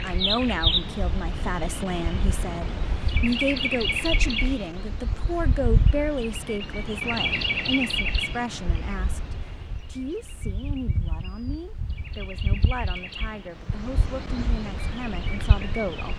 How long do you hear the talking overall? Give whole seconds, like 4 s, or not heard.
16 s.